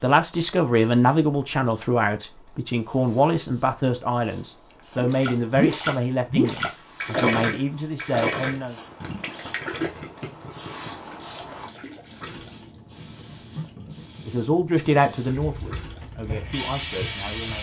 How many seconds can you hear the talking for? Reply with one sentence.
You can hear the talking for 12 seconds altogether.